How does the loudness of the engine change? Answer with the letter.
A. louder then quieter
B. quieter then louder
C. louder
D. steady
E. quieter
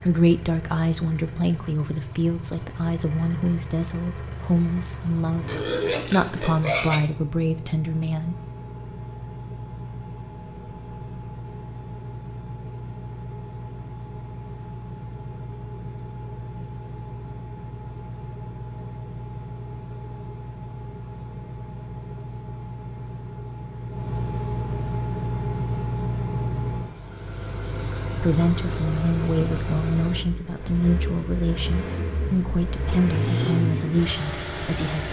C.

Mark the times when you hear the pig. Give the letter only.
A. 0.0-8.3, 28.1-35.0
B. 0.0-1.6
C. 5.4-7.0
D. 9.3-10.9
C.